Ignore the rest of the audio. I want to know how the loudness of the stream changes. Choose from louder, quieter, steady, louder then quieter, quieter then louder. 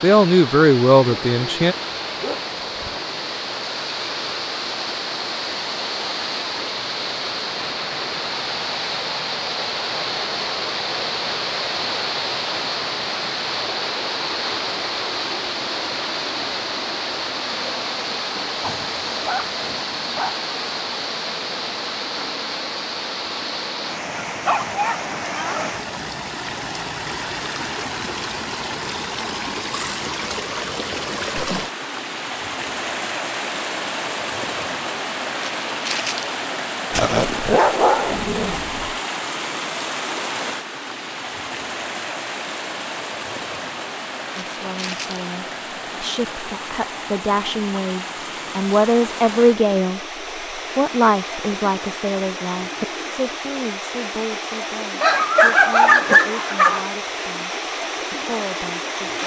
steady.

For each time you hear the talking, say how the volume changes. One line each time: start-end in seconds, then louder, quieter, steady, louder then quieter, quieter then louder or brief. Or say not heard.
0.0-1.8 brief
44.4-50.0 louder
50.8-59.2 quieter.